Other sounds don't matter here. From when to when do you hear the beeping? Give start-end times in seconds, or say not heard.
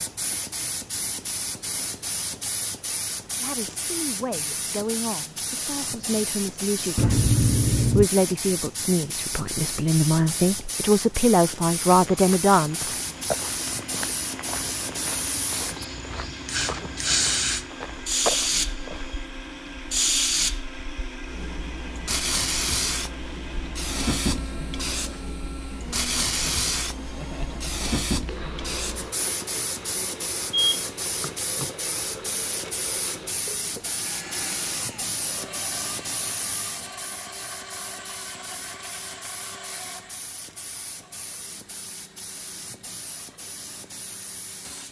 7.0-8.1, 30.5-31.7.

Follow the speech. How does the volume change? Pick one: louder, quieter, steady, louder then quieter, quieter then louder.
louder.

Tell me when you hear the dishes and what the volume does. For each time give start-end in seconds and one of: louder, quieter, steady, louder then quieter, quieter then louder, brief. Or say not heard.
not heard.